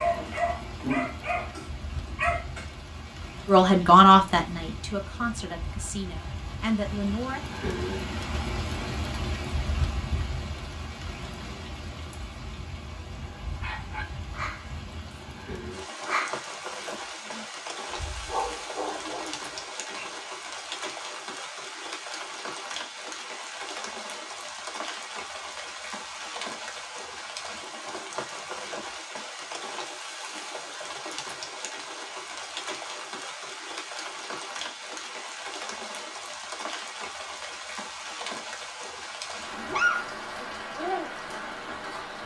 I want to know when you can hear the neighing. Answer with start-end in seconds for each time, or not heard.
not heard.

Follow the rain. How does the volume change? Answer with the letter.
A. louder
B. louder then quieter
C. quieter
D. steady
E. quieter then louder
D.